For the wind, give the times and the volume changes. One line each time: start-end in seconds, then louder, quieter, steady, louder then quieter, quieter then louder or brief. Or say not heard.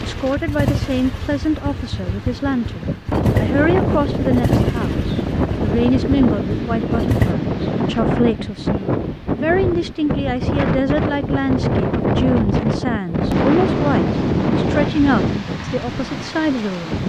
0.0-17.0 louder.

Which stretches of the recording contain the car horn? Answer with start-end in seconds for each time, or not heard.
not heard.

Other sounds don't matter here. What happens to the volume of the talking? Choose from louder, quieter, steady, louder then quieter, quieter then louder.
steady.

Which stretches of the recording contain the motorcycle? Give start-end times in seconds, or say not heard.
0.0-7.3.